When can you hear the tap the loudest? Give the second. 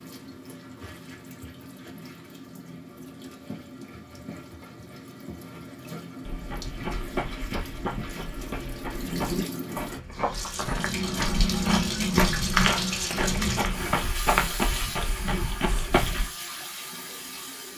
12 s.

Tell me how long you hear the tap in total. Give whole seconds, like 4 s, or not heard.
18 s.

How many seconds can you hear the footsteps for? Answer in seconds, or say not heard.
10 s.